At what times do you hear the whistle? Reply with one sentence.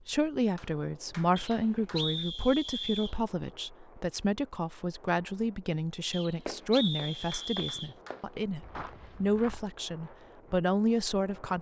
You can hear the whistle from 1.4 to 3.1 s and from 6.1 to 8.0 s.